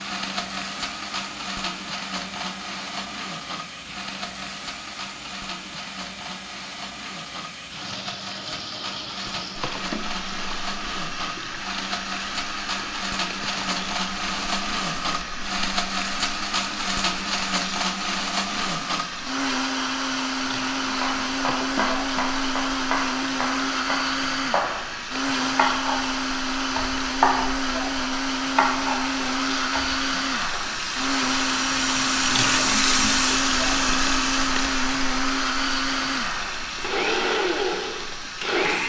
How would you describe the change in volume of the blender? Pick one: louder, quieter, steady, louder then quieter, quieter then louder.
louder.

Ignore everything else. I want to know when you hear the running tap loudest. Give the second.
33 s.